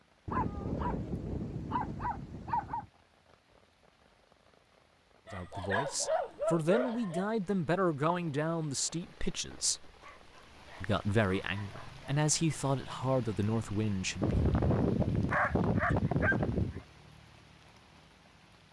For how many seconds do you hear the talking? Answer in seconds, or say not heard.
8 s.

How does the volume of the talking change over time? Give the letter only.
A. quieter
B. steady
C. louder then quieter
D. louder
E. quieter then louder
B.